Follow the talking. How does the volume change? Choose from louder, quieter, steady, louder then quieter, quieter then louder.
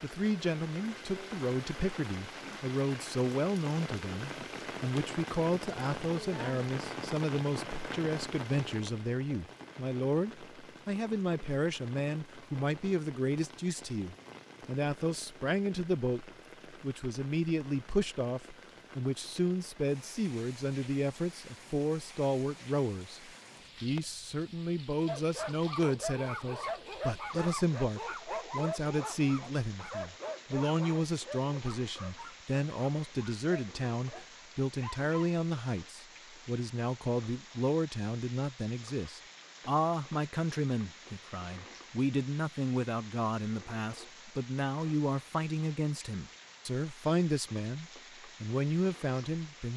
steady.